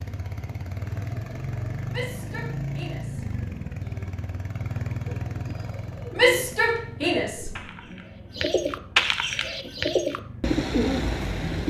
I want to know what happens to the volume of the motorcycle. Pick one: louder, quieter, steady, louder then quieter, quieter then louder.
quieter.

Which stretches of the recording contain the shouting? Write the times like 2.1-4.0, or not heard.
1.9-4.1, 6.2-7.5.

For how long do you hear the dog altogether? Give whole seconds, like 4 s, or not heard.
not heard.